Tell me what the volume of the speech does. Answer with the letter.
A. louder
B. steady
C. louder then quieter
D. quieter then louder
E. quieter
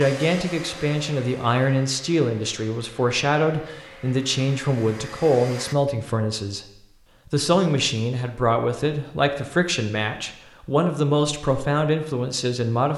B.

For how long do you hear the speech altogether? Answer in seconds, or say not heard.
13 s.